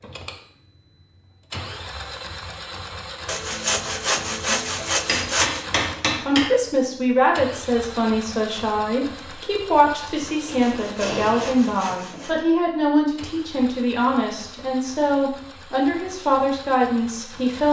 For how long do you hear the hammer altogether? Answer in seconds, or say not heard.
4 s.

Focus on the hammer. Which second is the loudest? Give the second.
6 s.